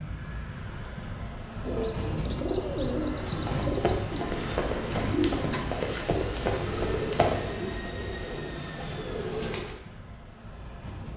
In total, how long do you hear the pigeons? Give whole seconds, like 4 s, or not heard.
8 s.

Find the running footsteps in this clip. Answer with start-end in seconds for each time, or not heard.
3.4-7.4.